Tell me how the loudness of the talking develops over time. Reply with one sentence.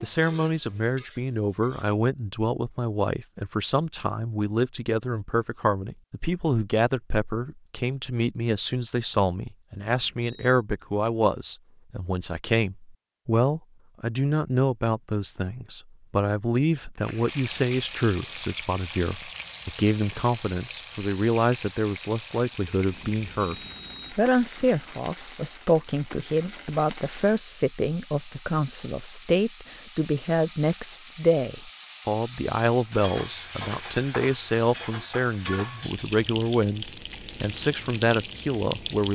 The loudness of the talking stays about the same.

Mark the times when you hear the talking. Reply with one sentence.
The talking can be heard from 0.0 to 39.1 s.